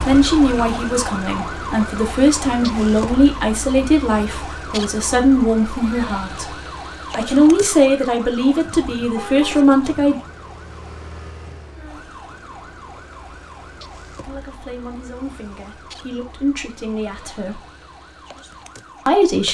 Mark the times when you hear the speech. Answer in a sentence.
You can hear the speech from 0.0 to 6.5 s, from 7.2 to 10.2 s, from 14.2 to 17.6 s and from 19.1 to 19.5 s.